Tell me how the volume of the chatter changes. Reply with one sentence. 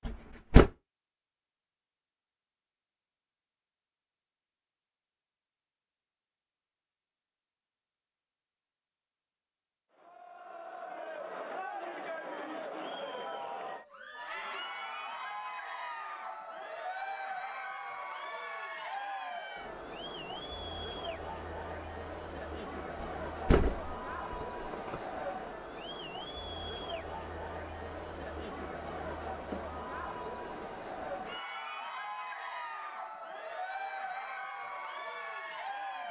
The loudness of the chatter stays about the same.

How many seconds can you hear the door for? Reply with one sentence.
You can hear the door for 3 seconds altogether.